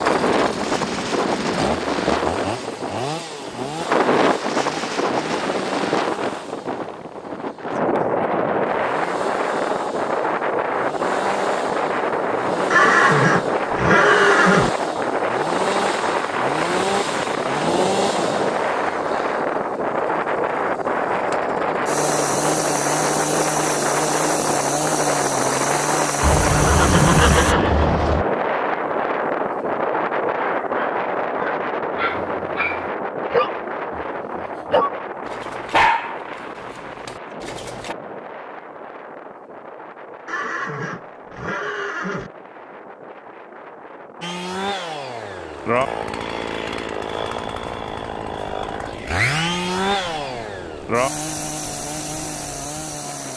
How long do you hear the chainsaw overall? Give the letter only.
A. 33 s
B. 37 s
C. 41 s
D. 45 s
B.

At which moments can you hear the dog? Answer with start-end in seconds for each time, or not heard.
30.4-36.1, 37.0-38.0.